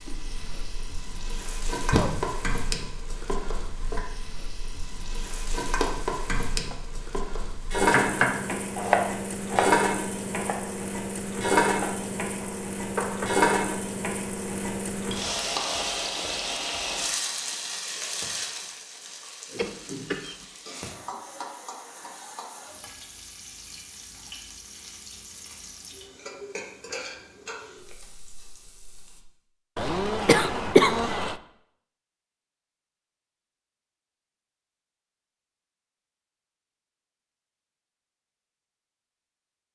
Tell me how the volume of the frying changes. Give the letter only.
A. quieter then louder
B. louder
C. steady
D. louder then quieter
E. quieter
D.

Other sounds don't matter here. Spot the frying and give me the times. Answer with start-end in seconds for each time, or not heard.
0.0-29.2.